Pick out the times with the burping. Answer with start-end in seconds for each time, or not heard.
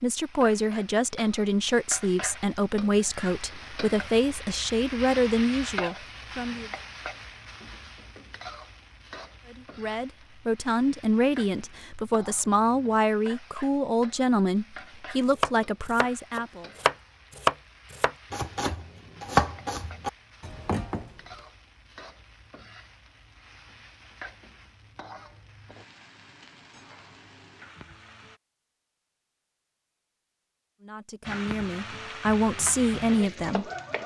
not heard.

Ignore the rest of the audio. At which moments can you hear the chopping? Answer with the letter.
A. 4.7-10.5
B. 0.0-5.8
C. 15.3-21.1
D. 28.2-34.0
C.